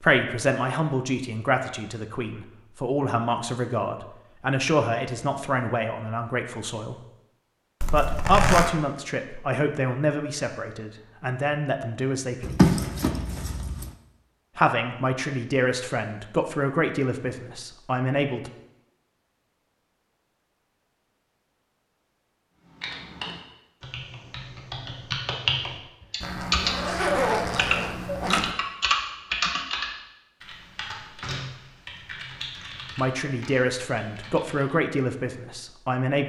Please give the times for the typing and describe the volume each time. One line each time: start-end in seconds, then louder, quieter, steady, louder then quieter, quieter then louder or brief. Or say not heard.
22.8-34.7 louder then quieter.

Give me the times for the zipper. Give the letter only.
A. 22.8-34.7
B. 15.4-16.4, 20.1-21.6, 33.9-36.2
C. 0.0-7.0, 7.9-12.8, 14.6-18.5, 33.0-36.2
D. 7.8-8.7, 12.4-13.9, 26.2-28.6
D.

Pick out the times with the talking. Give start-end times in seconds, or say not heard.
0.0-7.0, 7.9-12.8, 14.6-18.5, 33.0-36.2.